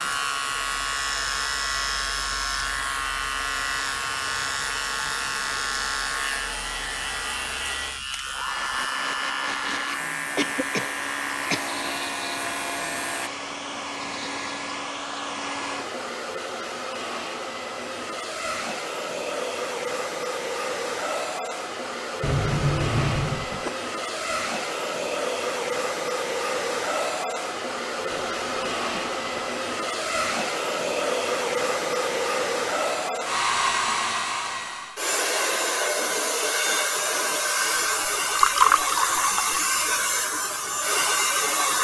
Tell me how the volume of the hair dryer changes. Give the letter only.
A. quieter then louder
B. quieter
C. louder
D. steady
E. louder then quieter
C.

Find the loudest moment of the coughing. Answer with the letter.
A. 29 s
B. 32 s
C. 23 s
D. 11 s
C.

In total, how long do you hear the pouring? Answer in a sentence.
The pouring can be heard for 2 seconds in total.